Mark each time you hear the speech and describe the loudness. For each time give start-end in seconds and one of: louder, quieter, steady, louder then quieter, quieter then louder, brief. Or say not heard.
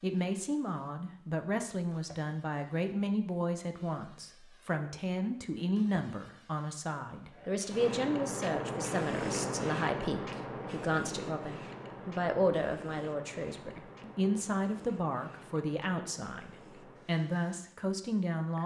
0.0-18.6 steady.